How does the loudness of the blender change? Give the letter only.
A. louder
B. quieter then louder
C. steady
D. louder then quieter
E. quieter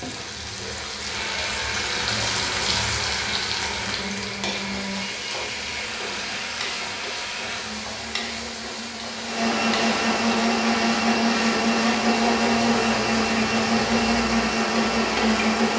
A.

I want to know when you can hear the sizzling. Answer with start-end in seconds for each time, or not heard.
0.0-15.7.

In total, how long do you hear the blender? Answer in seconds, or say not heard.
16 s.